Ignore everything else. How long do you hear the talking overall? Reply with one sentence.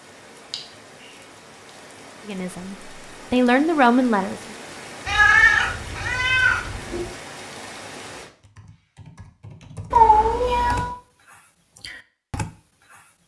The talking can be heard for 2 seconds in total.